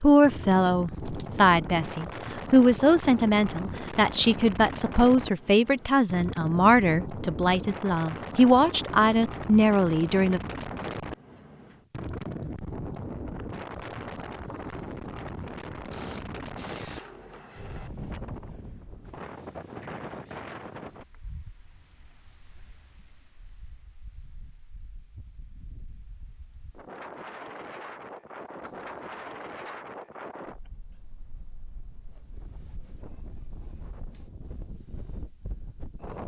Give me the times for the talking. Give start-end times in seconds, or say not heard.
0.0-10.4.